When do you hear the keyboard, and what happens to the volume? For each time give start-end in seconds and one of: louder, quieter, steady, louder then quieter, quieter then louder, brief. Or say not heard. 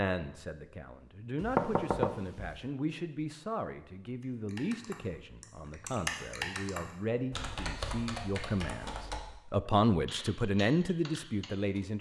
4.2-11.8 louder then quieter.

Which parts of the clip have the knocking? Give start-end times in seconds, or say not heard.
1.4-2.5.